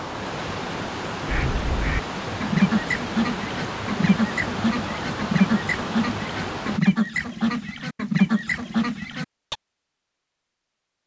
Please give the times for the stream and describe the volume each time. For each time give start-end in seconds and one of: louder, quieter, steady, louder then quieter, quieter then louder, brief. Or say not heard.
0.0-6.8 steady.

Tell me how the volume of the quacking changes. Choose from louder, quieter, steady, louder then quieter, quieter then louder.
steady.